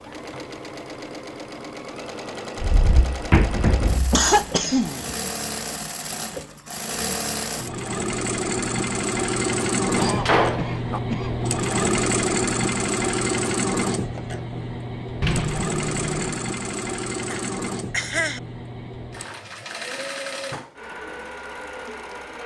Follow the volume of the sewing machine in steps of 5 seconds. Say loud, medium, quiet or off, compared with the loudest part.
medium, loud, loud, medium, medium.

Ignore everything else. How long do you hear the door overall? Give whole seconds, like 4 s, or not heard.
4 s.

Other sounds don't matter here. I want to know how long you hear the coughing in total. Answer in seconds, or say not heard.
4 s.